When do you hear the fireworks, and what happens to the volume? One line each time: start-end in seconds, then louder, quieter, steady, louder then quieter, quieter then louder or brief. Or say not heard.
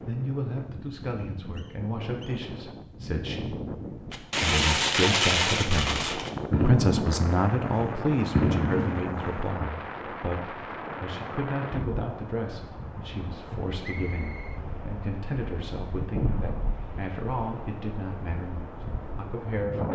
4.1-9.5 quieter then louder.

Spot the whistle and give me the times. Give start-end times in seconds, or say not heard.
1.1-2.4, 13.8-14.6.